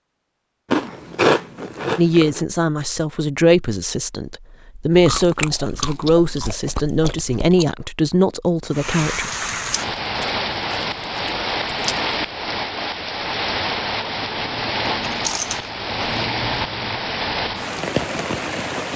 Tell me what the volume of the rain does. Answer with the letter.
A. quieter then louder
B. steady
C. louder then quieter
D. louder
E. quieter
B.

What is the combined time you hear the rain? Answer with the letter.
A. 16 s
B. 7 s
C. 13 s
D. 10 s
D.